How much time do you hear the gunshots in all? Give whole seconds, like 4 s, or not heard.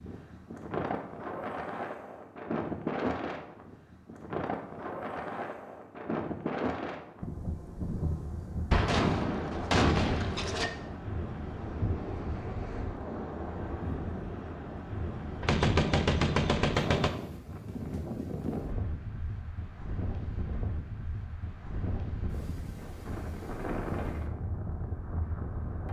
4 s.